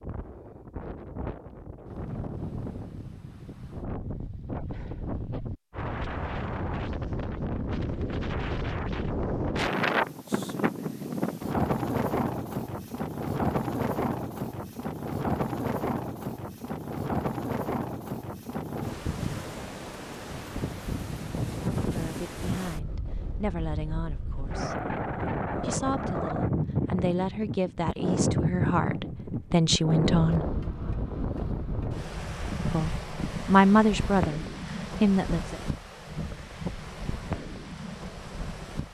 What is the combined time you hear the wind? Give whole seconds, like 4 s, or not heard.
39 s.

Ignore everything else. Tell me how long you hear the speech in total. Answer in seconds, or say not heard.
11 s.